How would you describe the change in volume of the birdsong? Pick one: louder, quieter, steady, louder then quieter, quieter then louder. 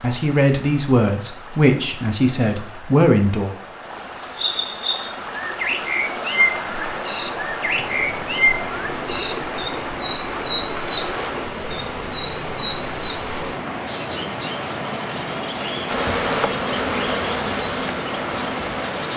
quieter.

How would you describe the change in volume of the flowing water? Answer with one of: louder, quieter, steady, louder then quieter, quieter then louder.
louder.